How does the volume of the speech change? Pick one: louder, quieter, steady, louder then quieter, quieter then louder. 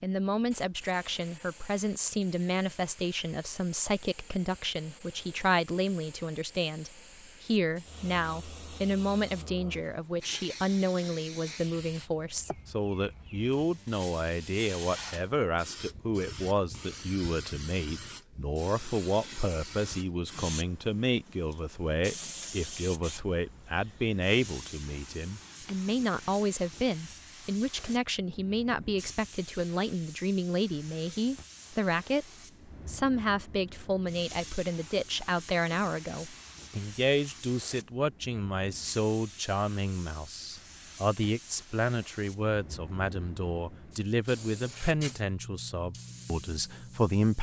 steady.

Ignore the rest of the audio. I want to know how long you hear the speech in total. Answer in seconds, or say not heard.
47 s.